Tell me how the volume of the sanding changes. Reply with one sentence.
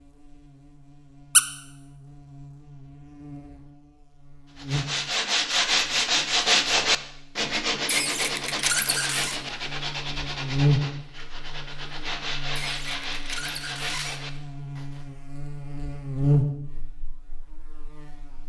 The loudness of the sanding goes down.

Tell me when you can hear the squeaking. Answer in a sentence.
You can hear the squeaking from 7.8 to 9.4 s and from 12.6 to 14.2 s.